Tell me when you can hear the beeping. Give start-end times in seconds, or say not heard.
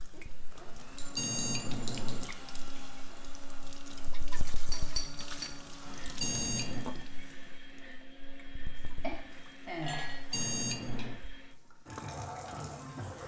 1.1-2.3, 6.2-6.8, 10.3-11.2.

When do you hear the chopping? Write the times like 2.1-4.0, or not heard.
not heard.